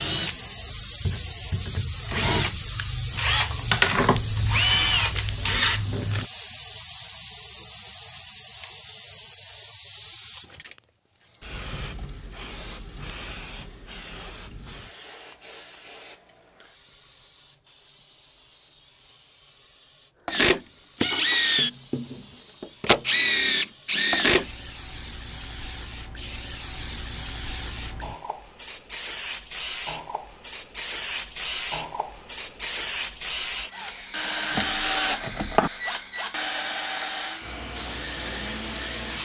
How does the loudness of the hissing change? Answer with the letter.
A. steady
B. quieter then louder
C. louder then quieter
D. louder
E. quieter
B.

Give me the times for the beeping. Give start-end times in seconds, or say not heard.
not heard.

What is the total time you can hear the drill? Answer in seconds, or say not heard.
16 s.